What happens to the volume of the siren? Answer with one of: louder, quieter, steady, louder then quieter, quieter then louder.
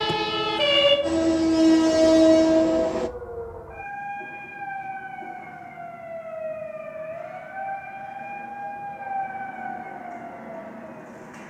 quieter.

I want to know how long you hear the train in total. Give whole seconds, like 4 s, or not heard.
3 s.